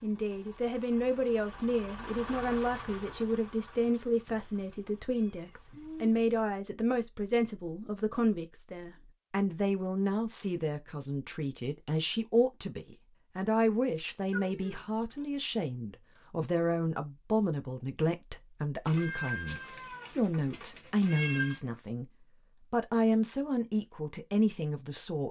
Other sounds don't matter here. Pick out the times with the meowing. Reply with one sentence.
The meowing can be heard from 5.1 to 6.1 s, from 14.3 to 14.8 s and from 18.9 to 21.6 s.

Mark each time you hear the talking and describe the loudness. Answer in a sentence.
The talking can be heard from 0.0 to 22.1 s, at a steady volume; and briefly from 22.7 to 25.2 s.